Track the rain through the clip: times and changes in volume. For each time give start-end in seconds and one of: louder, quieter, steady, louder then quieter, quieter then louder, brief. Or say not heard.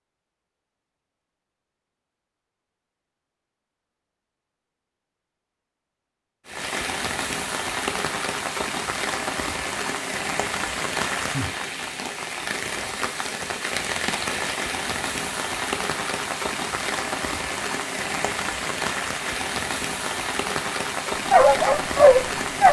6.5-22.6 steady.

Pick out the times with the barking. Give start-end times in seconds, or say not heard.
21.3-22.6.